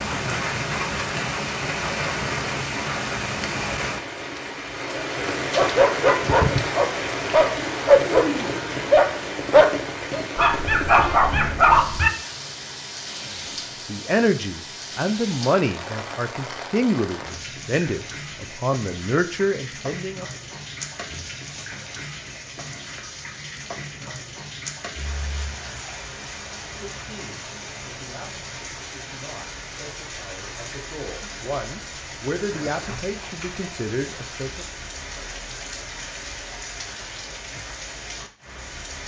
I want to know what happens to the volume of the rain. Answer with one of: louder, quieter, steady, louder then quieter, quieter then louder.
quieter.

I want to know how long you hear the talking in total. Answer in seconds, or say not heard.
15 s.